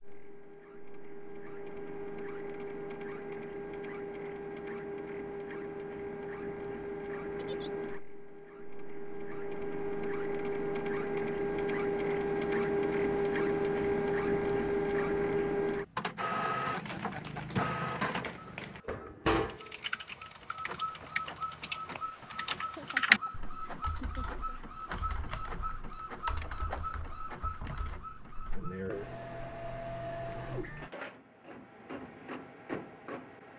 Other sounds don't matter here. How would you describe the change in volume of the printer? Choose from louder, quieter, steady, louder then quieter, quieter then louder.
louder then quieter.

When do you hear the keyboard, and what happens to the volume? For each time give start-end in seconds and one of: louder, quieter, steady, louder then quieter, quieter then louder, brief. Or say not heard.
16.6-28.7 louder then quieter.